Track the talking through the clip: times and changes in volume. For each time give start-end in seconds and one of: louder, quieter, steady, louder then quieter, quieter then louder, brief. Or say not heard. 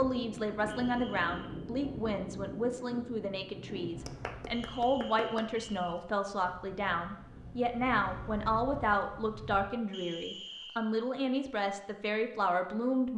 0.0-13.1 steady.